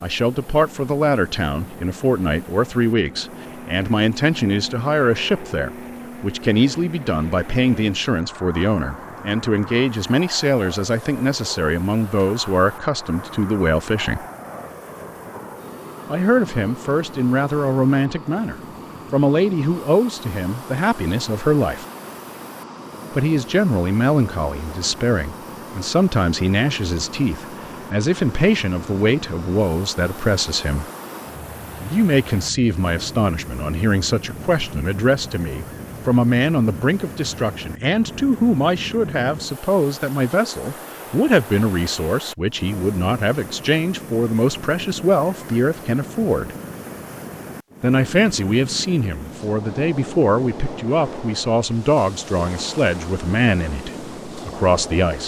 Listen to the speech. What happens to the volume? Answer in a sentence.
The loudness of the speech stays about the same.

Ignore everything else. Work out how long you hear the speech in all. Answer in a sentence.
The speech can be heard for 50 seconds in total.